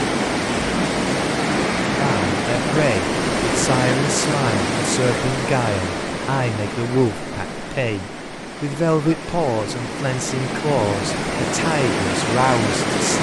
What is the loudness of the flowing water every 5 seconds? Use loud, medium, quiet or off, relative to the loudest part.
loud, medium, loud.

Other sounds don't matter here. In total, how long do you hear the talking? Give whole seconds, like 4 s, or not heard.
11 s.